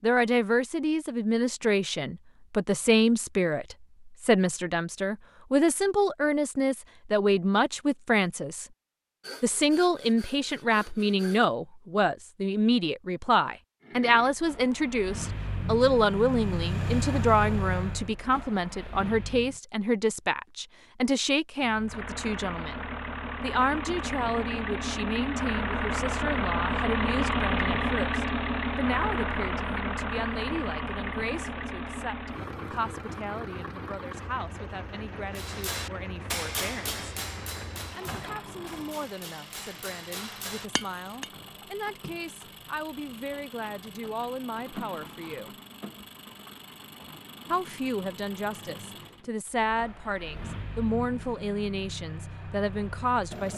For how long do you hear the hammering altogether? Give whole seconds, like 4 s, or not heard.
6 s.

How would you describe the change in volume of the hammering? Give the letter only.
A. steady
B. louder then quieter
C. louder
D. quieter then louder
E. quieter
D.